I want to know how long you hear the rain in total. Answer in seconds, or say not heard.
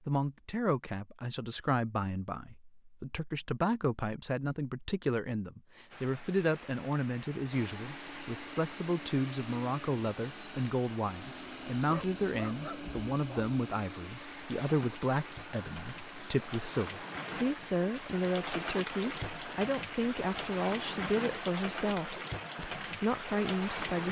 18 s.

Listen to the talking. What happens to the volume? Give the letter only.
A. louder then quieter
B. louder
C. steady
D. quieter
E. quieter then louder
C.